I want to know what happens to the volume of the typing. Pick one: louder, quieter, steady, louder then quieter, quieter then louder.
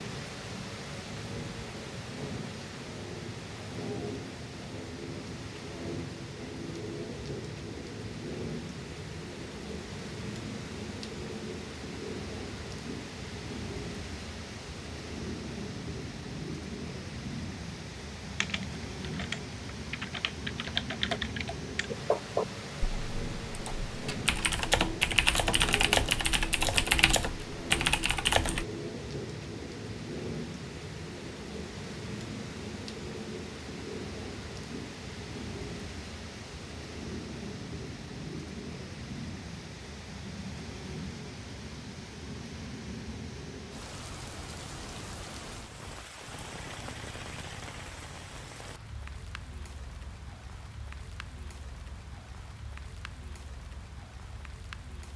louder.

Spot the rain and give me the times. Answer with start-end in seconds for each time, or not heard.
0.0-55.1.